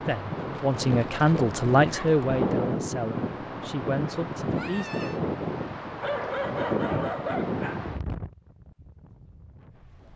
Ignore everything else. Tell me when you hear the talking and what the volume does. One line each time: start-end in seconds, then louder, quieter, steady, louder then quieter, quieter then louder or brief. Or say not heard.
0.1-5.0 quieter.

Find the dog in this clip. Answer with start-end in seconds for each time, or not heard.
0.7-2.2, 6.0-7.8.